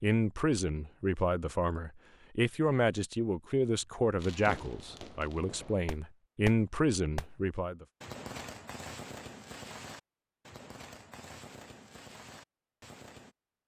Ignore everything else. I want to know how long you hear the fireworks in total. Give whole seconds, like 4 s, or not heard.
9 s.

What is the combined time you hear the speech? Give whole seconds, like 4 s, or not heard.
8 s.